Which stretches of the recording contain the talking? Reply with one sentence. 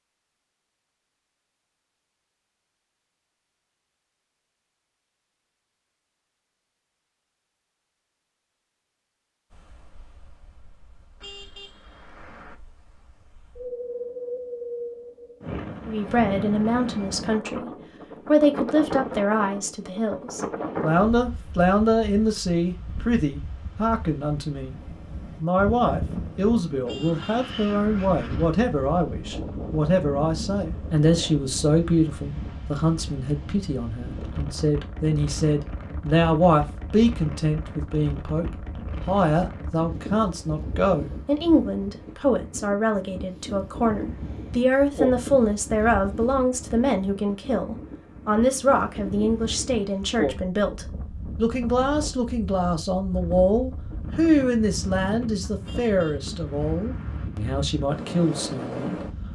You can hear the talking from 15.8 to 24.8 s and from 25.4 to 59.0 s.